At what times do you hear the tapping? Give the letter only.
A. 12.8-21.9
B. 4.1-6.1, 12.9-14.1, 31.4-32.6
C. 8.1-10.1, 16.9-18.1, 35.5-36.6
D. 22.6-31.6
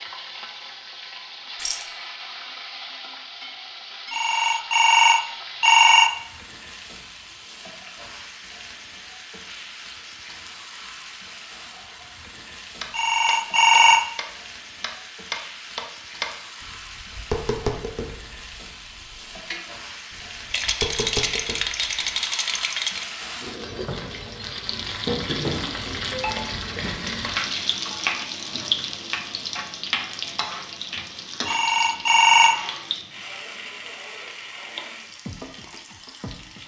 A.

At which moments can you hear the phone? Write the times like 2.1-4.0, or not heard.
4.1-6.1, 12.9-14.1, 31.4-32.6.